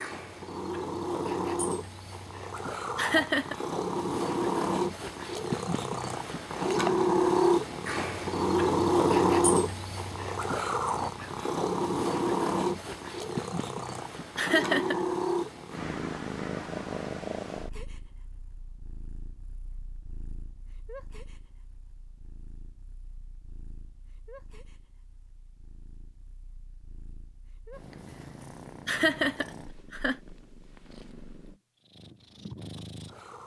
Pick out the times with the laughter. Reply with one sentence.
The laughter can be heard from 3.0 to 3.5 s, from 14.3 to 15.0 s and from 28.9 to 30.1 s.